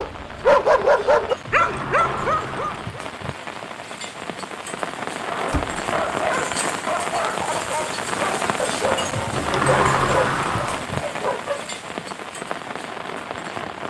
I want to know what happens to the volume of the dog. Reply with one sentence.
The loudness of the dog goes down.